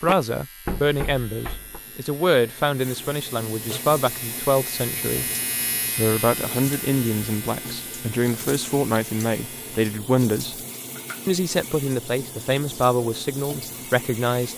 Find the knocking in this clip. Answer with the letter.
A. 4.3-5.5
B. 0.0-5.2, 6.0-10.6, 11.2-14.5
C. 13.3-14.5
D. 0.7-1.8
D.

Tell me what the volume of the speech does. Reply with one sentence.
The volume of the speech stays about the same.